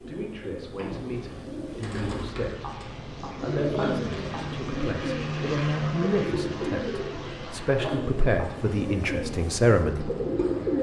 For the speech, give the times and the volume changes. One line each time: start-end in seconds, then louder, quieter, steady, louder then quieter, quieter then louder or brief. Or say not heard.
0.0-10.1 louder.